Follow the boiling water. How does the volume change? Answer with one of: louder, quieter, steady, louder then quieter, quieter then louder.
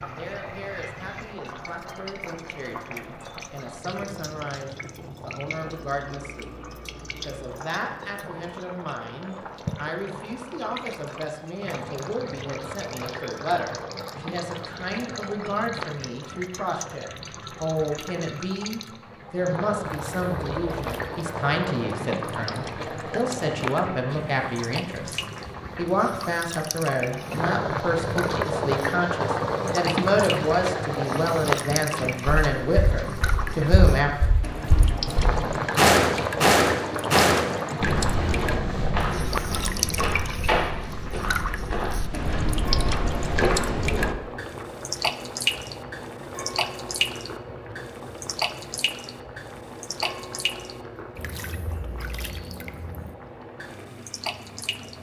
louder then quieter.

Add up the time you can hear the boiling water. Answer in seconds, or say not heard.
55 s.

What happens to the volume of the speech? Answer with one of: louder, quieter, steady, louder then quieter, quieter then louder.
louder.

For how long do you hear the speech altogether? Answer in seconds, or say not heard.
34 s.